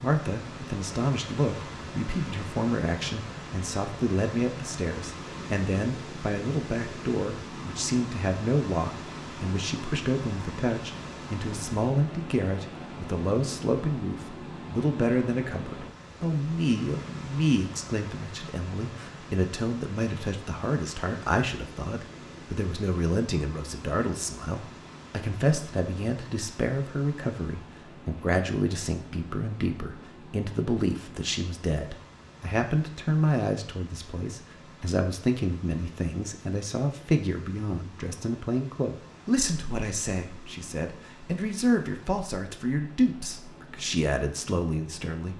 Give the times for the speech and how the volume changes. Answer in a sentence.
The speech can be heard from 0.0 to 45.3 s, at a steady volume.